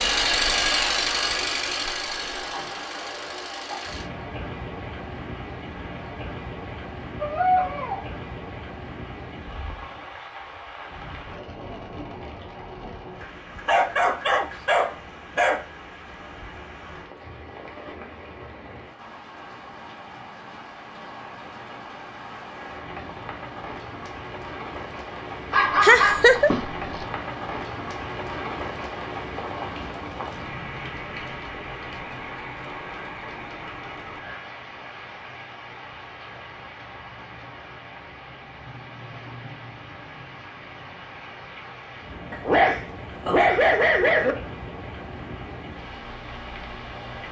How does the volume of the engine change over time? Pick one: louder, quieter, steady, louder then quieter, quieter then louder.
quieter.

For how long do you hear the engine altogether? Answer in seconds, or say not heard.
4 s.